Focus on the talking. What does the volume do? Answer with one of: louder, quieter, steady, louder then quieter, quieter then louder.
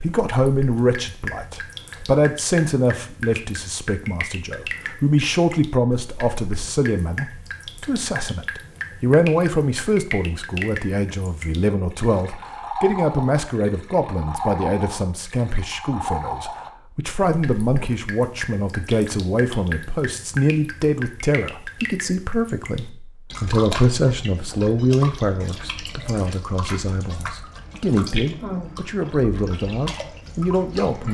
steady.